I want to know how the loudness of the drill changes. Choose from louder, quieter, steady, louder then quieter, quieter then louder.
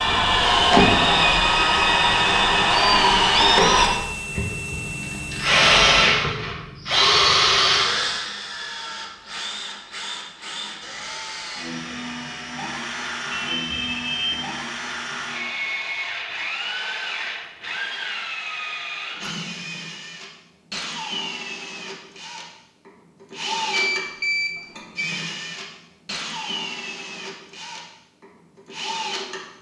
quieter.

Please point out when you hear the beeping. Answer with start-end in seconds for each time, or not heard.
3.8-5.6, 13.3-14.4, 23.7-25.1.